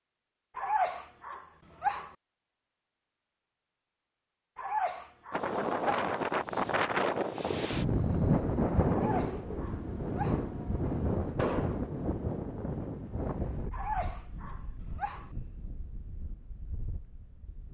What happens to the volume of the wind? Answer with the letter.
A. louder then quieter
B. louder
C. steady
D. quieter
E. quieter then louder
D.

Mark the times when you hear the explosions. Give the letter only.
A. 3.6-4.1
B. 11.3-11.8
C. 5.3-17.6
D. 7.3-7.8
B.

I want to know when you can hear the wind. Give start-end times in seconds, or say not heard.
5.3-17.6.